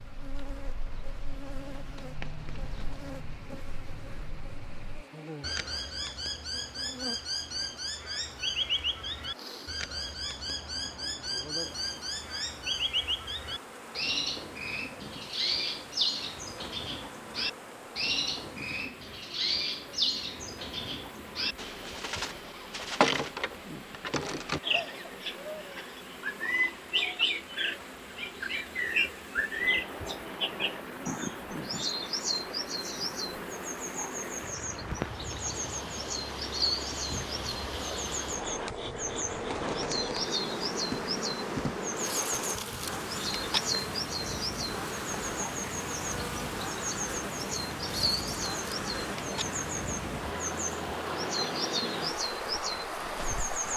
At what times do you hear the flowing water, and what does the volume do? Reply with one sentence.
You can hear the flowing water from 0.0 to 53.7 s, getting louder.